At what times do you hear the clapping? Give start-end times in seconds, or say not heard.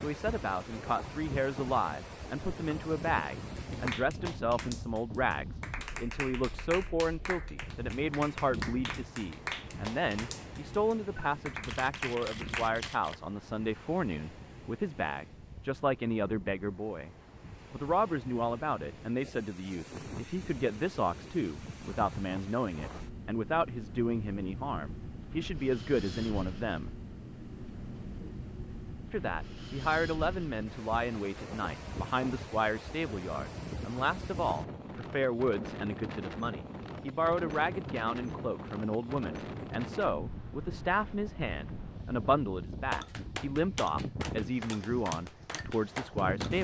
3.5-13.2, 42.9-46.5.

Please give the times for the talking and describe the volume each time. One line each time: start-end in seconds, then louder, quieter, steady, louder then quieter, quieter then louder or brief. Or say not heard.
0.0-26.9 steady
29.1-46.5 steady.